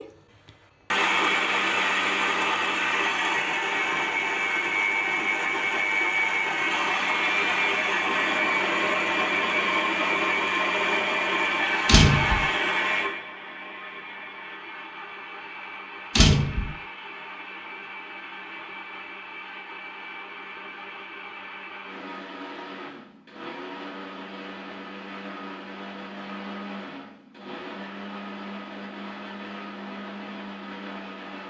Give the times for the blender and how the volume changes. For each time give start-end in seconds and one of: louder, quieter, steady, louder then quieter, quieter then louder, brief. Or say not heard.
0.0-31.4 quieter.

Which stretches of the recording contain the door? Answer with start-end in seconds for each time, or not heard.
11.8-12.4, 16.1-16.8.